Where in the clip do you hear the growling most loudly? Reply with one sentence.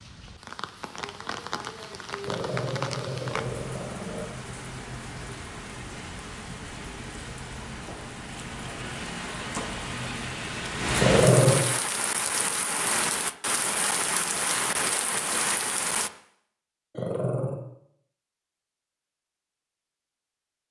The loudest moment of the growling is at 11 seconds.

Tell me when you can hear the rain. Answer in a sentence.
The rain can be heard from 0.0 to 16.1 s.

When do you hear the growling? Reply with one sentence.
You can hear the growling from 2.2 to 4.2 s, from 10.9 to 11.6 s and from 16.9 to 17.6 s.